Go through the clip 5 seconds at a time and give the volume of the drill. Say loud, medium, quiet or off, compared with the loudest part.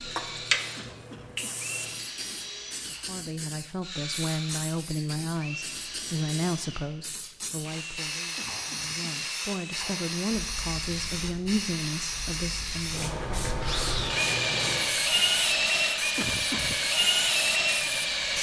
quiet, quiet, medium, loud.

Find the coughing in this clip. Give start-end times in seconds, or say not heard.
0.8-1.6, 8.3-9.2, 16.1-16.9.